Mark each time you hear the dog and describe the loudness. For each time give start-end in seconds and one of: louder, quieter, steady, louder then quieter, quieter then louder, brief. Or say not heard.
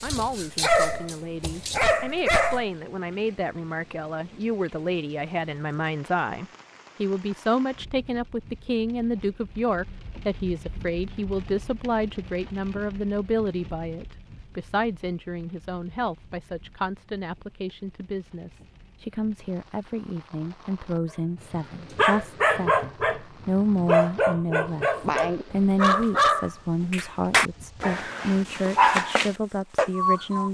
0.0-2.7 brief
21.5-30.4 steady.